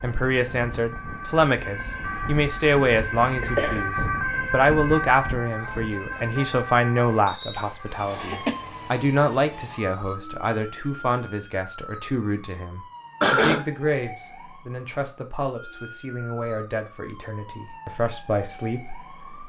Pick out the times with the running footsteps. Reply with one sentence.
The running footsteps can't be heard in this clip.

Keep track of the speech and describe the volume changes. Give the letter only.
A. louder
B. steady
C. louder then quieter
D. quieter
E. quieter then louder
D.